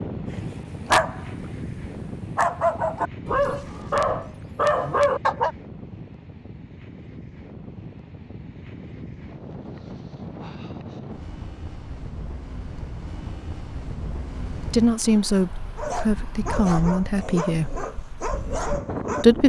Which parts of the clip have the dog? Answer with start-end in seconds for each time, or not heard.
0.3-5.5, 15.8-19.2.